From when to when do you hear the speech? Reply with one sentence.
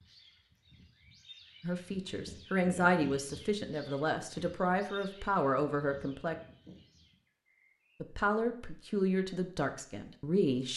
You can hear the speech from 1.6 to 6.3 s and from 8.0 to 10.7 s.